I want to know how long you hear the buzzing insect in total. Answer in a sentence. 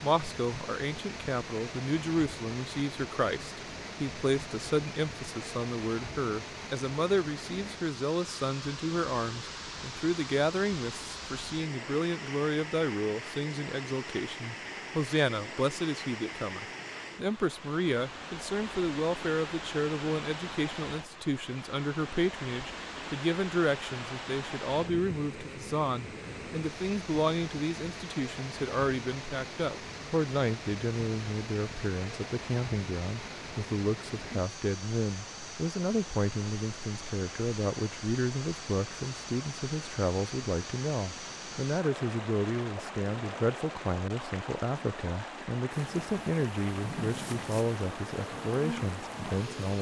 You can hear the buzzing insect for 4 seconds altogether.